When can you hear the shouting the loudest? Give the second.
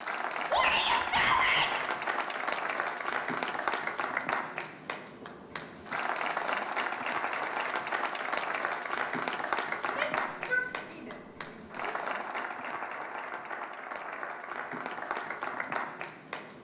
1 s.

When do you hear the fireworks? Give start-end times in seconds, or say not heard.
not heard.